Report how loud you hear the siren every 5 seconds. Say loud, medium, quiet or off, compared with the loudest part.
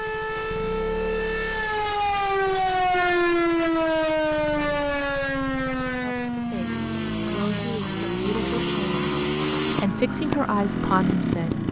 loud, medium, quiet.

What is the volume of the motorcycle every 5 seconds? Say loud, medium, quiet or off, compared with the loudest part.
quiet, loud, loud.